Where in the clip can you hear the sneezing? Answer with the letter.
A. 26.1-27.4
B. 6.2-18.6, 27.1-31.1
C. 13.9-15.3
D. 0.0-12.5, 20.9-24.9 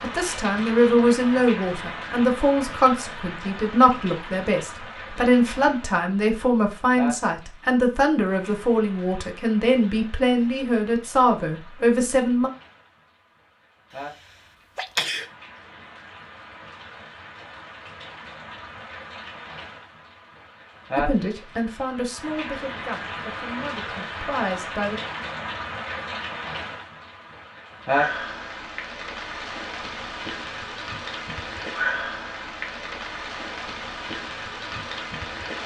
C.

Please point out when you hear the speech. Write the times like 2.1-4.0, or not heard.
0.0-12.5, 20.9-24.9.